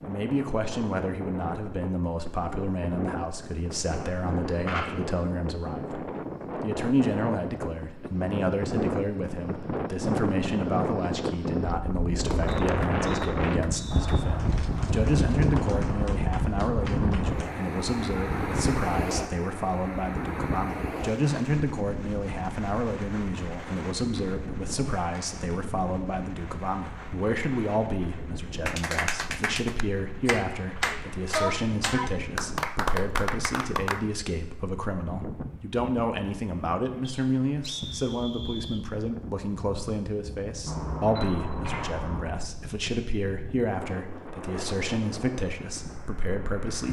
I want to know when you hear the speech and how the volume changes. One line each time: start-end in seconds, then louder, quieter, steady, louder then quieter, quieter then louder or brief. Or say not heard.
0.1-46.8 steady.